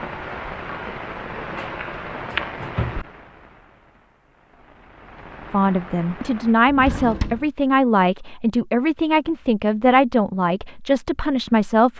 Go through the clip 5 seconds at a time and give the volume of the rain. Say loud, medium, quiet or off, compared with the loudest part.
loud, medium, off.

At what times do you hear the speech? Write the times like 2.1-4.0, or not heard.
5.5-11.9.